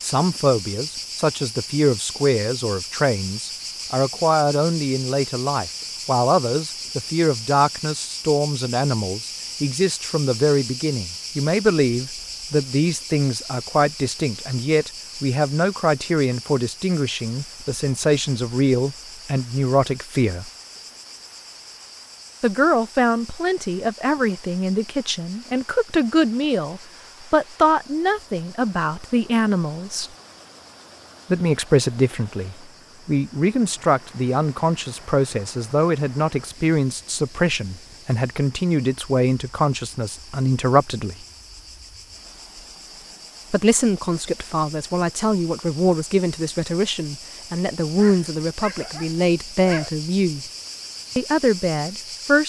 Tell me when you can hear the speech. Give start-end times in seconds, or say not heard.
0.0-20.5, 22.4-30.1, 31.3-41.2, 43.5-50.5, 51.1-52.4.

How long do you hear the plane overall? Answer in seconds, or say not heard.
not heard.